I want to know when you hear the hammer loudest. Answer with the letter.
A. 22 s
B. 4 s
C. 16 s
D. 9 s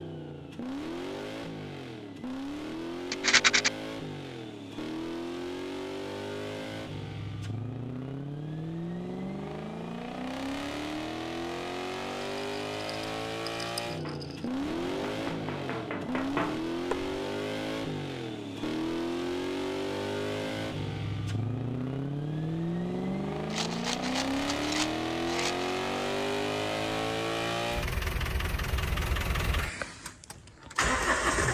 C.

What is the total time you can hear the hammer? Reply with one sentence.
You can hear the hammer for 3 seconds altogether.